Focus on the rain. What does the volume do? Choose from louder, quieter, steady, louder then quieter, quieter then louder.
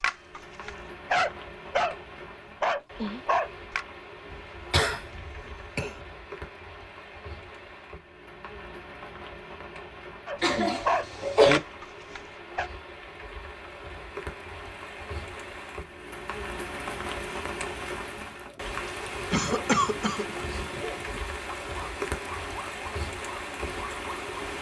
louder.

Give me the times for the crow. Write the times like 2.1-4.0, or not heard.
not heard.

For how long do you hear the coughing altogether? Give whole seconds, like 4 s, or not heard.
4 s.